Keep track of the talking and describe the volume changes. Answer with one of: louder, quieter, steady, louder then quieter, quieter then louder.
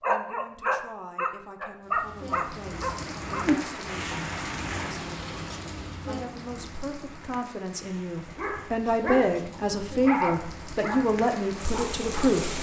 louder.